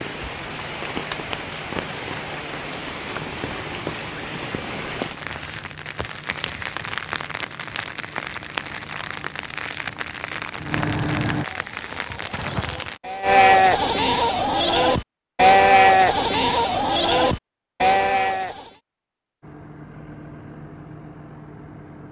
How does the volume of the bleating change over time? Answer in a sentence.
The loudness of the bleating goes up.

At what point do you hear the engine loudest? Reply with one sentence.
The volume of the engine peaks at 11 seconds.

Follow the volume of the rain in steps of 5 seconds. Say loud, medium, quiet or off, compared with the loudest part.
loud, loud, loud, off, off.